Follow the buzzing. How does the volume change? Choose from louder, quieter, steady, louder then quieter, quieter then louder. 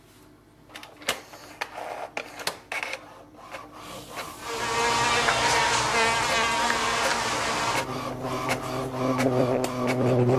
quieter then louder.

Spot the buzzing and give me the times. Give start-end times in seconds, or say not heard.
4.4-10.3.